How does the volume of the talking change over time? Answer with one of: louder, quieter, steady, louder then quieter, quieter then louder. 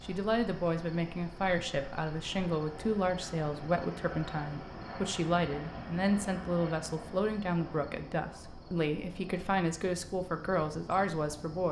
steady.